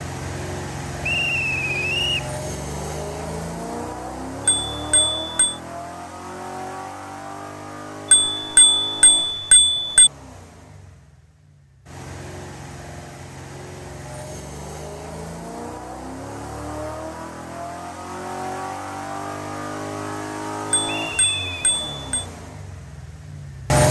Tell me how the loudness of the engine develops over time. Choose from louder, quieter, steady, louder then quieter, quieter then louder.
quieter then louder.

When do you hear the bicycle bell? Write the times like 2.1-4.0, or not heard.
4.5-5.5, 8.1-10.1, 20.7-22.2.